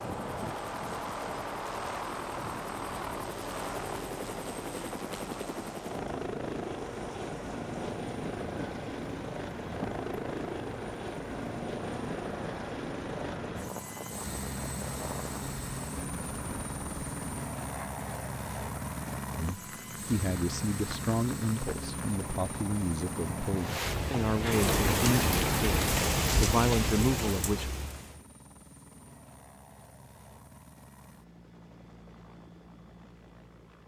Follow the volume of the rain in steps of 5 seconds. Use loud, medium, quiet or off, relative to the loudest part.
quiet, quiet, quiet, quiet, medium, loud, off.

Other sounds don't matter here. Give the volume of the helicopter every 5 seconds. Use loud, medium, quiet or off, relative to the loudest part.
loud, loud, loud, loud, loud, quiet, quiet.